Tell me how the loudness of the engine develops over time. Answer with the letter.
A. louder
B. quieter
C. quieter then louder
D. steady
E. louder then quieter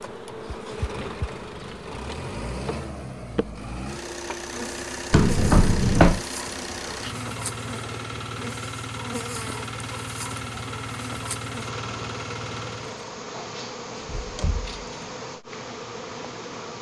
D.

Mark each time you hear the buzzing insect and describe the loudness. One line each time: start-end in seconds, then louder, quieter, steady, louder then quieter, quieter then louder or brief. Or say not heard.
0.0-16.7 steady.